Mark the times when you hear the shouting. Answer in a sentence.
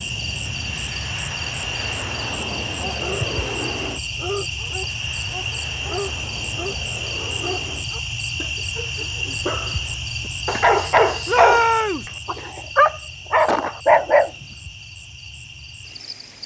The shouting can be heard from 11.2 to 12.1 s.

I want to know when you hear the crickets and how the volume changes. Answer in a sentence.
You can hear the crickets from 0.0 to 16.4 s, getting quieter.